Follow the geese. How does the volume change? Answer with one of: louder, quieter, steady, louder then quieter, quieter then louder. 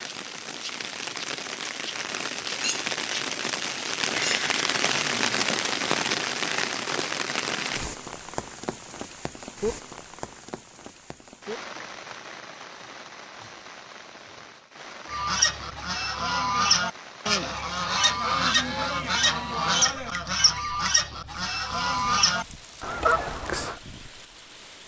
steady.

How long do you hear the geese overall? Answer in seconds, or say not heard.
9 s.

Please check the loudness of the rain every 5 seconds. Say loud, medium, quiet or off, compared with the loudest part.
loud, loud, quiet, quiet, quiet.